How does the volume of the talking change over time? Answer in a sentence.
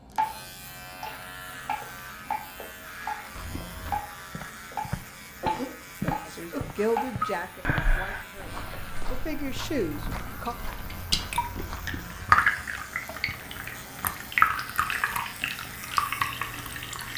The loudness of the talking goes down, then up.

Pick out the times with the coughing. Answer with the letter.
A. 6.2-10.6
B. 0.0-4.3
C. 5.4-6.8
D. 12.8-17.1
C.